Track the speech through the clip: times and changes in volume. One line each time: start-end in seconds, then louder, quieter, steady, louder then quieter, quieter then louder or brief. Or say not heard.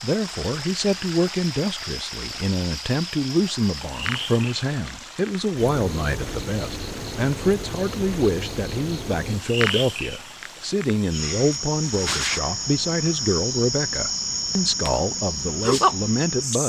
0.0-16.6 steady.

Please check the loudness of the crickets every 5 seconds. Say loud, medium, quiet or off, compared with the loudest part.
medium, medium, loud, loud.